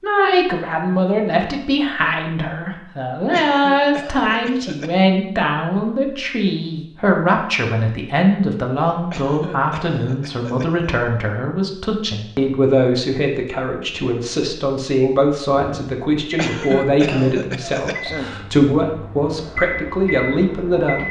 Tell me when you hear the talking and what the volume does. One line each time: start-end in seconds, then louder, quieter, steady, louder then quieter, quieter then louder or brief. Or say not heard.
0.0-21.0 steady.